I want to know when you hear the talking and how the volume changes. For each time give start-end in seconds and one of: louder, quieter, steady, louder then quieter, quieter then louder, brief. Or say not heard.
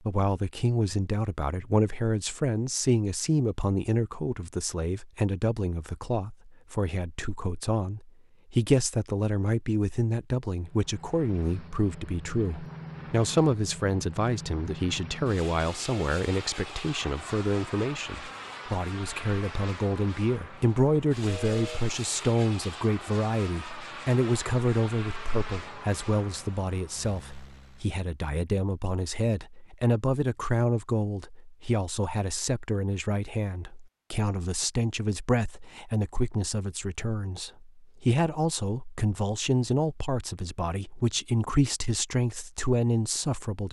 0.1-43.6 steady.